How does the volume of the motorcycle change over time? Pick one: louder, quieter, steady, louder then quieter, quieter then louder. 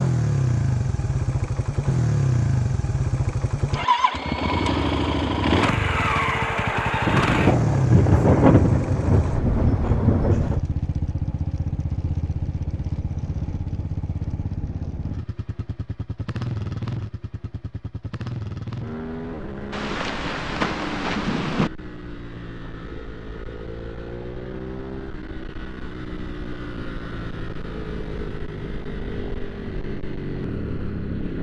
quieter.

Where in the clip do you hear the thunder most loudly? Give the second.
8 s.